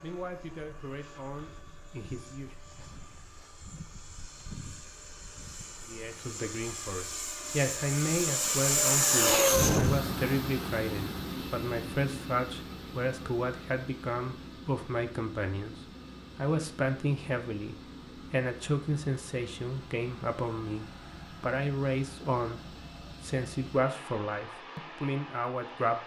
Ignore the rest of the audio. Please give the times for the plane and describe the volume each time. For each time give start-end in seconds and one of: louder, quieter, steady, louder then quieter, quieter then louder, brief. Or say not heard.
0.1-26.0 louder then quieter.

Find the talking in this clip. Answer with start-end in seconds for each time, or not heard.
0.0-2.5, 5.8-26.0.